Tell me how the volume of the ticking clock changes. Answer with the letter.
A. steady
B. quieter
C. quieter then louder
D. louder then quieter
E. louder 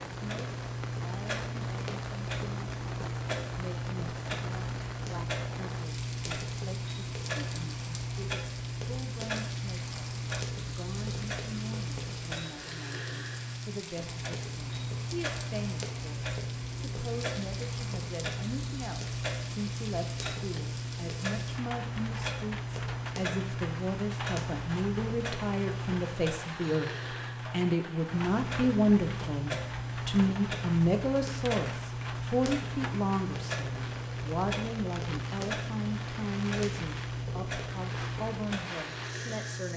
A.